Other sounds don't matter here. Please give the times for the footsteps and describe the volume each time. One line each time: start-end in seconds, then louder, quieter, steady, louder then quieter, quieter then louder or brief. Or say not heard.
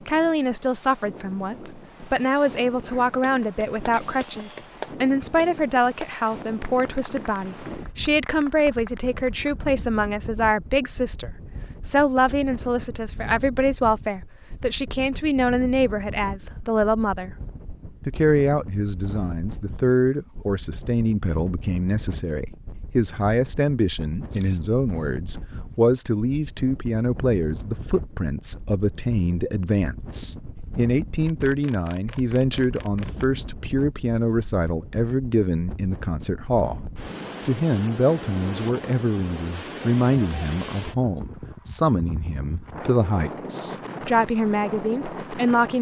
not heard.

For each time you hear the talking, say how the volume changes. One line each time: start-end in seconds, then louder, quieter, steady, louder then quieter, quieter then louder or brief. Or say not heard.
0.1-17.4 steady
18.1-36.9 steady
37.5-45.7 steady.